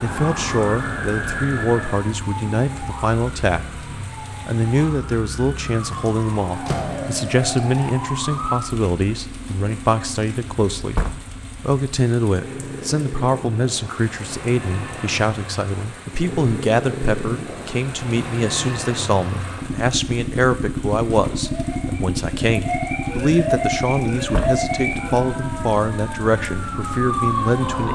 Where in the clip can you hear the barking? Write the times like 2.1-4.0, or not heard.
not heard.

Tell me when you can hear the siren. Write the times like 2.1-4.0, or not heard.
0.0-8.6, 21.4-27.8.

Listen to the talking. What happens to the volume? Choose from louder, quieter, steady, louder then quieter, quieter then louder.
steady.